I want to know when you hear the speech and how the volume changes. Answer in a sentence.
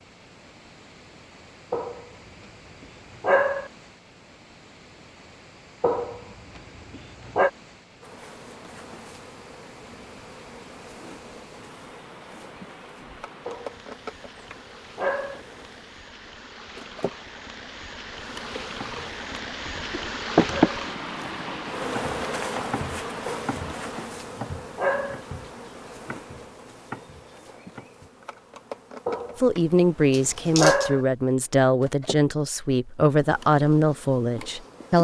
You can hear the speech from 29.4 to 34.9 s, at a steady volume.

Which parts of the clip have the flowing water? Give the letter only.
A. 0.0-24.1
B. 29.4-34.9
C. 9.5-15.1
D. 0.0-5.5
A.